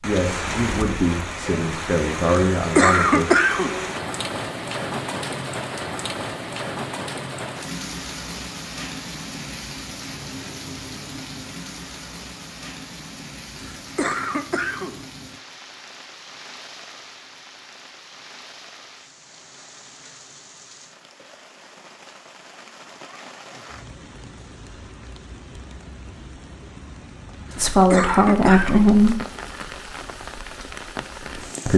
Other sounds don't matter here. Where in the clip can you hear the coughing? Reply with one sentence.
The coughing can be heard from 2.4 to 3.8 s, from 13.6 to 15.0 s and from 27.4 to 28.9 s.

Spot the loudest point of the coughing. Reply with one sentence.
The volume of the coughing peaks at 3 seconds.